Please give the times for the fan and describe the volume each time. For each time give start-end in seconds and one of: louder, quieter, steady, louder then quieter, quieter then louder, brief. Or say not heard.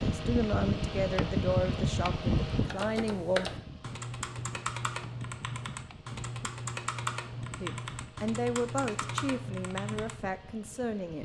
0.0-11.2 quieter.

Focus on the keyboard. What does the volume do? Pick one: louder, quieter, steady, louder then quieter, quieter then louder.
steady.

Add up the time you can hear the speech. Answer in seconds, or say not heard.
7 s.